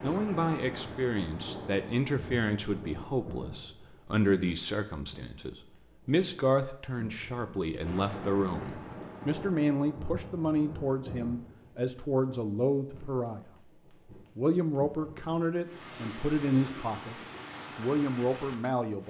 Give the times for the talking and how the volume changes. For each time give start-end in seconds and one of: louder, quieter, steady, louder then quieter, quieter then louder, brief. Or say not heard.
0.0-13.5 steady
14.3-17.1 brief
17.8-19.0 brief.